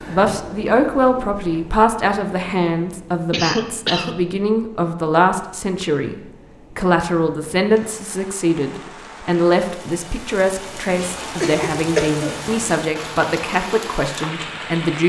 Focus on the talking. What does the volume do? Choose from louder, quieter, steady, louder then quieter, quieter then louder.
steady.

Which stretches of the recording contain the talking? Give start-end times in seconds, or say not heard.
0.1-15.0.